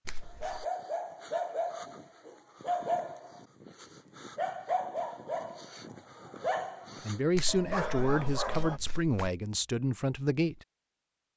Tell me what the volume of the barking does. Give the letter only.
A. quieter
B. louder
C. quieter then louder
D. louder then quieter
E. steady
E.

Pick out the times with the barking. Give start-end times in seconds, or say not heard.
0.2-8.8.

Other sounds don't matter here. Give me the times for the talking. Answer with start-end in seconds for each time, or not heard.
7.0-10.7.